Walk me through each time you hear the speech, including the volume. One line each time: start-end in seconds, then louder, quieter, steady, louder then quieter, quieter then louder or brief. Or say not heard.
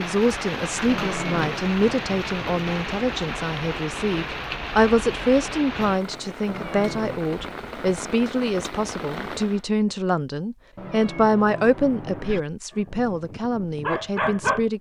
0.0-14.7 steady.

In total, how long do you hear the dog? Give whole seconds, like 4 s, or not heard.
2 s.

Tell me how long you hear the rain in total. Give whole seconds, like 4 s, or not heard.
10 s.